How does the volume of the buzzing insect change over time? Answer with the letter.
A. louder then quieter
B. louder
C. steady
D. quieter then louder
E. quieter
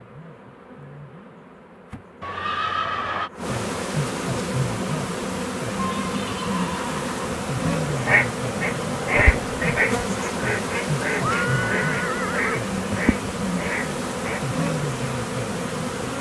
B.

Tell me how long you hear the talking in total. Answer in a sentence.
You can't hear the talking here.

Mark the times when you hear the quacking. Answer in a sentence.
You can hear the quacking from 7.8 to 14.4 s.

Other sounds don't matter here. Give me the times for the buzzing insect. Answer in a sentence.
You can hear the buzzing insect from 0.0 to 16.1 s.